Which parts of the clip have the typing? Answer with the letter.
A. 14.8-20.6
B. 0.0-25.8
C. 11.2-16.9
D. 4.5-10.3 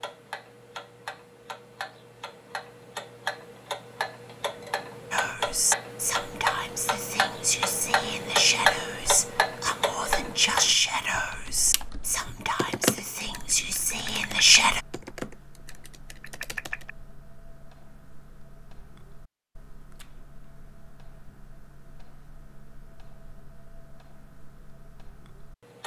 C.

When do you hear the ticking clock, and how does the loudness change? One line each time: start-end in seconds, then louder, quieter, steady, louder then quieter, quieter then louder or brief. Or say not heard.
0.0-25.8 louder then quieter.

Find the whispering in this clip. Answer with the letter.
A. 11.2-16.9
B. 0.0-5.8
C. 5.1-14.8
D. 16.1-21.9
C.